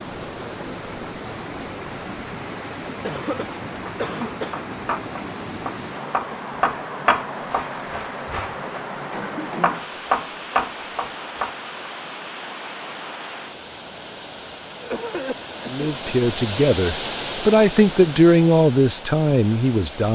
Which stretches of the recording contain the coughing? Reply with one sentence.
You can hear the coughing from 3.0 to 4.7 s, from 9.1 to 9.8 s and from 14.8 to 15.9 s.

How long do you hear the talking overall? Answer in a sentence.
The talking can be heard for 4 seconds in total.